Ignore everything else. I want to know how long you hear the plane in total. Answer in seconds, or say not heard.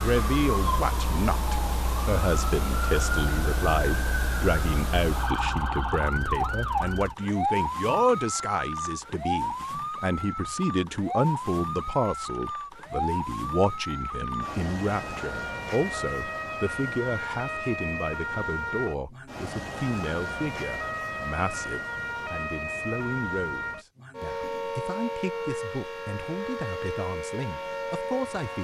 not heard.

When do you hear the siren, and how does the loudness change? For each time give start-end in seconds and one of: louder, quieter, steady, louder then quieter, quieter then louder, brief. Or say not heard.
0.0-28.6 steady.